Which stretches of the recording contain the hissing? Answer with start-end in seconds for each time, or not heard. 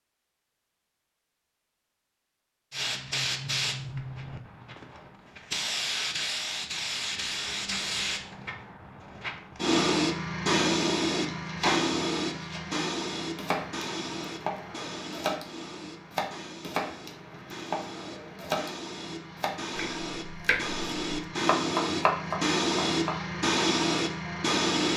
2.7-24.9.